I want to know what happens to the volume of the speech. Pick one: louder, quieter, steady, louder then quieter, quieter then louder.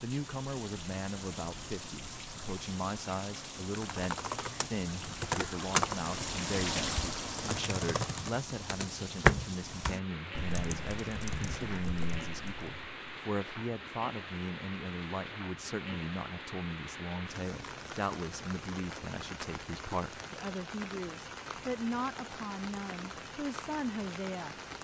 steady.